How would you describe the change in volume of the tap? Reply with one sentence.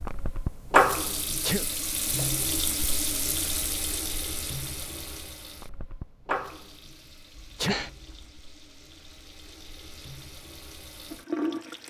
The loudness of the tap goes down, then up.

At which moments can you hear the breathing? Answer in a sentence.
You can hear the breathing from 7.3 to 8.3 s.